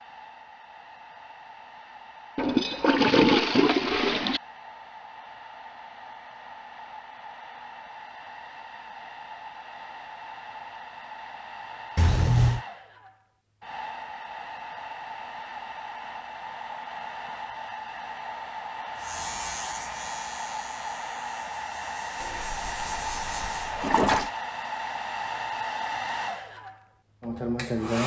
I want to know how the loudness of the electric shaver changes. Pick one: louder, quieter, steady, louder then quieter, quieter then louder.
quieter then louder.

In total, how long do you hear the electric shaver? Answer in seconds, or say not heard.
5 s.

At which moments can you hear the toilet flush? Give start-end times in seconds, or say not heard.
2.4-4.4, 11.9-12.6, 22.2-24.3.